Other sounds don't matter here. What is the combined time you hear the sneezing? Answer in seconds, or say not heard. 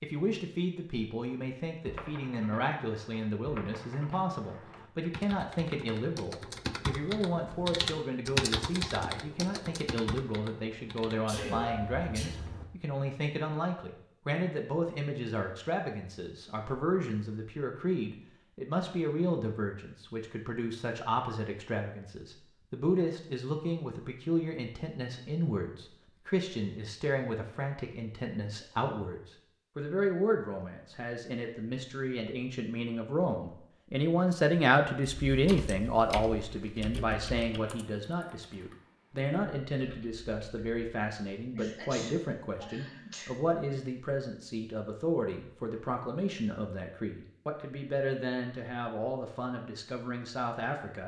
3 s.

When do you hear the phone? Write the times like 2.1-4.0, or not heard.
11.3-12.7.